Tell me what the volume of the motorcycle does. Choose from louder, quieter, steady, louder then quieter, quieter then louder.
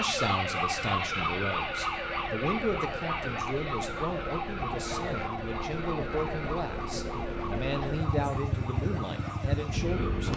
louder.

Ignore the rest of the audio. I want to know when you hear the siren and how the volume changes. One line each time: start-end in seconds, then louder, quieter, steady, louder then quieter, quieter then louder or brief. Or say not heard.
0.0-10.3 quieter.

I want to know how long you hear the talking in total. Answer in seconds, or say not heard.
10 s.